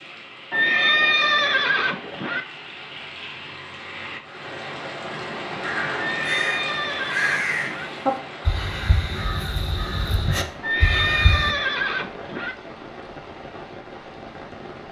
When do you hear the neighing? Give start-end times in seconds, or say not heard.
0.5-2.5, 6.0-7.9, 10.6-12.6.